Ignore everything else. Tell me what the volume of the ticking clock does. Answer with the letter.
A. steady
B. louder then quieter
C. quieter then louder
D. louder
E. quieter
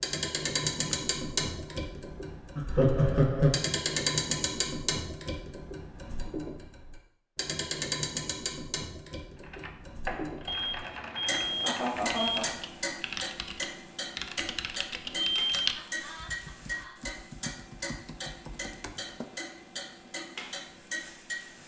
E.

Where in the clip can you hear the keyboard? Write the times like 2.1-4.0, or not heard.
9.3-19.2.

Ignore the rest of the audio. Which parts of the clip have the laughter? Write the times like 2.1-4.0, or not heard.
2.5-3.5, 11.6-12.6, 15.8-17.1.